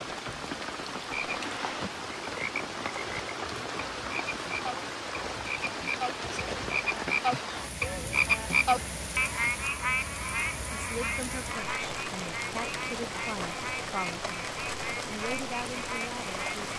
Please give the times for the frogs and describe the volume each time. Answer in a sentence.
You can hear the frogs from 0.0 to 16.6 s, getting louder then quieter.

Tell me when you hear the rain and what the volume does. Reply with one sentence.
You can hear the rain from 0.0 to 16.7 s, at a steady volume.